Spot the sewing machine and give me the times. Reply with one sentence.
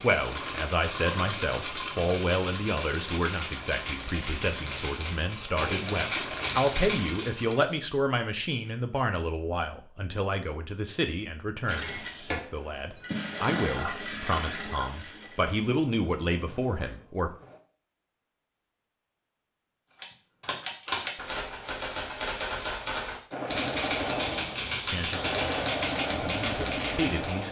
The sewing machine can be heard from 0.0 to 7.7 s, from 11.7 to 17.6 s and from 23.3 to 27.4 s.